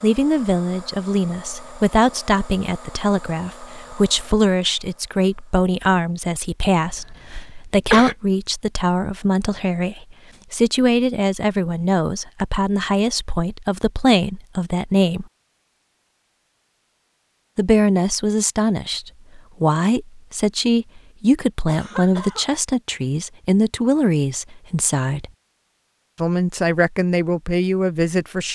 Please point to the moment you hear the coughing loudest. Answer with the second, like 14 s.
8 s.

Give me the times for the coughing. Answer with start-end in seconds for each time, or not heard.
6.8-8.2, 21.6-22.5.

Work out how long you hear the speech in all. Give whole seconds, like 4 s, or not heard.
25 s.